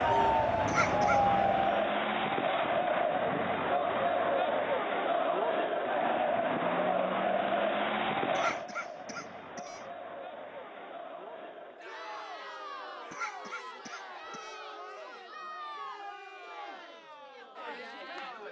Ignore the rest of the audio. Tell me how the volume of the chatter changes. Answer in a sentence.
The loudness of the chatter goes down.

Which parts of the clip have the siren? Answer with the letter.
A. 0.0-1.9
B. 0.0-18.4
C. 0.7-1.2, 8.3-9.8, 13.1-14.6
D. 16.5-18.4
A.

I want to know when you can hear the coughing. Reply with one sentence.
The coughing can be heard from 0.7 to 1.2 s, from 8.3 to 9.8 s and from 13.1 to 14.6 s.